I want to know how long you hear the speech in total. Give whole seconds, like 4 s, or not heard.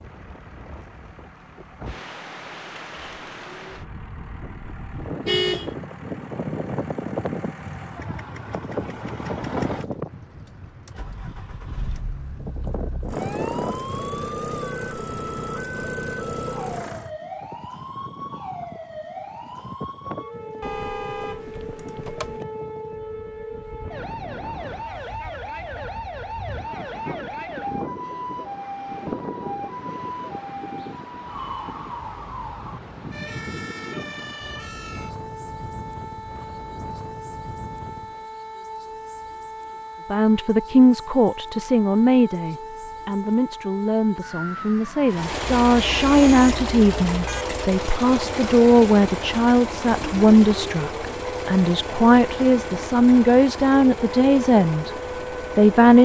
15 s.